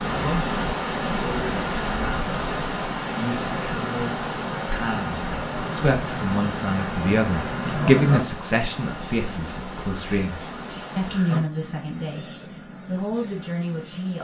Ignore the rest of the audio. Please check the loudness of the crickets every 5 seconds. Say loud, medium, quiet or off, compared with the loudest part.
medium, loud, loud.